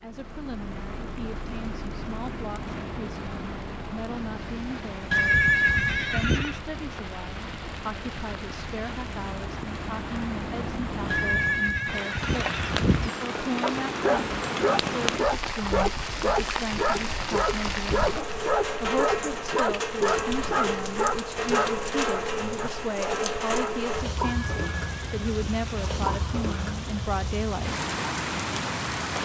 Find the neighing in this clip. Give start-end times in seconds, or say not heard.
5.1-6.6, 11.1-13.1, 24.4-26.2.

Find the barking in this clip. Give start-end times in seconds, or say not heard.
13.6-23.8.